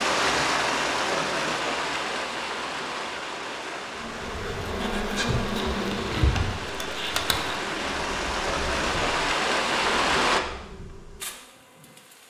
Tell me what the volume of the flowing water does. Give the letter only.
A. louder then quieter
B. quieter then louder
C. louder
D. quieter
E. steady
B.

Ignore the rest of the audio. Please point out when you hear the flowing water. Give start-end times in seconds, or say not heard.
0.0-10.4.